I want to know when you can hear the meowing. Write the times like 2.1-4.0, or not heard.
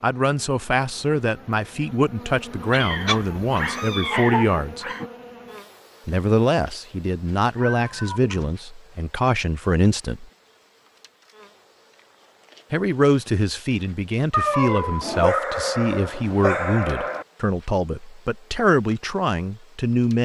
2.8-5.1, 7.5-8.6, 14.3-15.4.